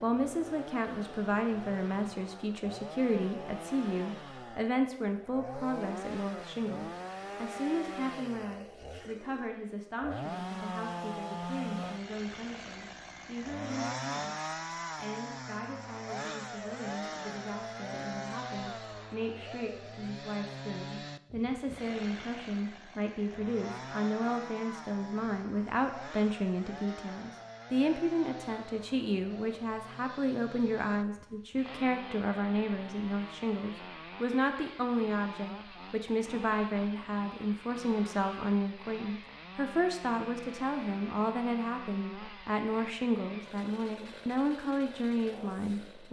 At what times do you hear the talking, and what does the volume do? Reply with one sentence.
You can hear the talking from 0.0 to 46.0 s, getting quieter then louder.